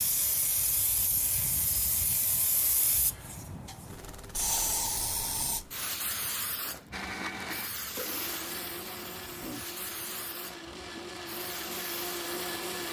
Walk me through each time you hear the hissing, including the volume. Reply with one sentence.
You can hear the hissing from 0.0 to 12.8 s, getting quieter.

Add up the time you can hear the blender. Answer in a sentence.
You can hear the blender for 6 seconds altogether.